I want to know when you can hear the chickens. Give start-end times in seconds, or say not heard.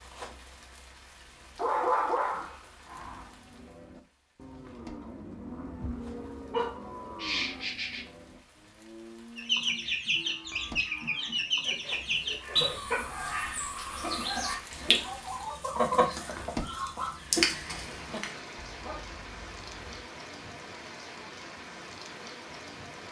9.3-19.9.